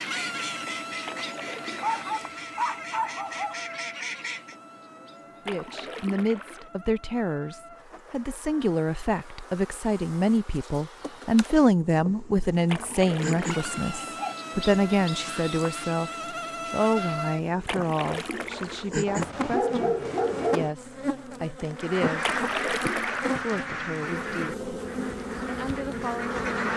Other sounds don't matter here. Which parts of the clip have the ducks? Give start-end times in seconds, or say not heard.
0.0-4.5, 21.8-26.7.